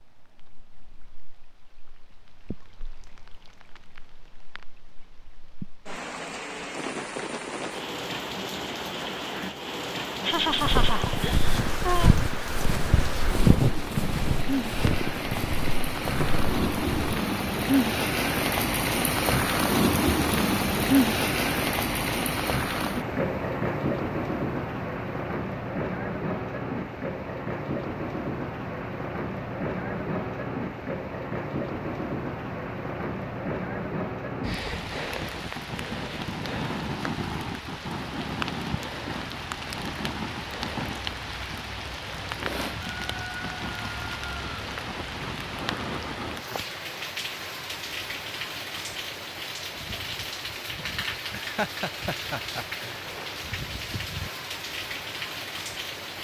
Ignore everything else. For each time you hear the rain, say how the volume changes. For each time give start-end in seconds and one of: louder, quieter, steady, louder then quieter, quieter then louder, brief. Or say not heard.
0.0-56.1 louder then quieter.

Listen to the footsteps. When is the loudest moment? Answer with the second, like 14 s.
14 s.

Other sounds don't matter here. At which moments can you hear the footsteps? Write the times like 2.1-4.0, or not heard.
10.5-17.2.